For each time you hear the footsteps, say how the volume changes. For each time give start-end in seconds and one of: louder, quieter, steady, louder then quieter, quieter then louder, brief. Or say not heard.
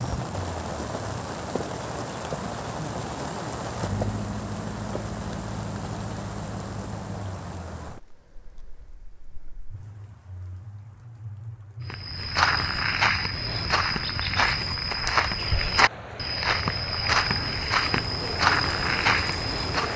11.8-19.9 steady.